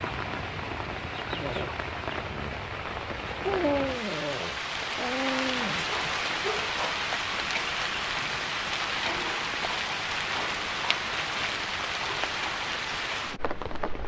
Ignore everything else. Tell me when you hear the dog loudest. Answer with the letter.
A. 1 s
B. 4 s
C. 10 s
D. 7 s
B.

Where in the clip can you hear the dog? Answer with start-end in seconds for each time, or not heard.
1.3-2.6, 3.3-7.0.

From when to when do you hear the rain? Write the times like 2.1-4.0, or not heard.
0.0-14.0.